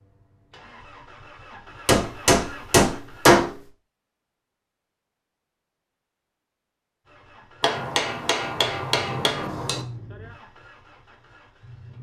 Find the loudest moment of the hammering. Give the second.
3 s.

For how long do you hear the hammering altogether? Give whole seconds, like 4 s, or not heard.
4 s.